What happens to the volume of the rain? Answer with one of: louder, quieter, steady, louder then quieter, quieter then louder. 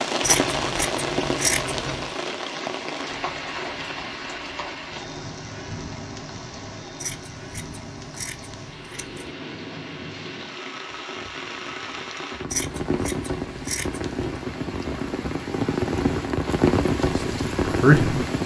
quieter then louder.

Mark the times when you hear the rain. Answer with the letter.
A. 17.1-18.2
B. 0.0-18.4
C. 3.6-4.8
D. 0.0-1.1
B.